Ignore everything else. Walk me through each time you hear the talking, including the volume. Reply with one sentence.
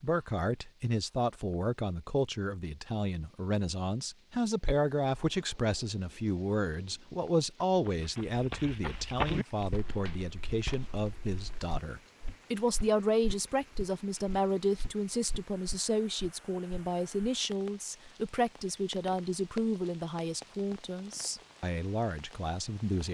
The talking can be heard from 0.0 to 23.0 s, at a steady volume.